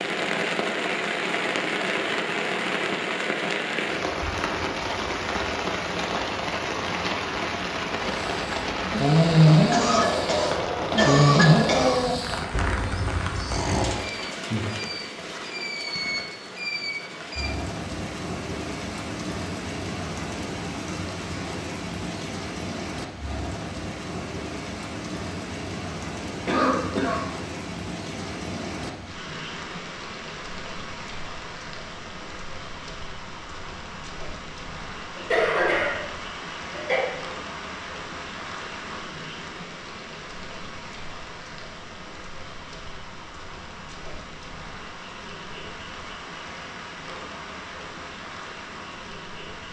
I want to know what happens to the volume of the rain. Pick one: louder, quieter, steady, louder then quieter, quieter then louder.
quieter.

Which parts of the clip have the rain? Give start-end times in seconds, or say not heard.
0.0-49.6.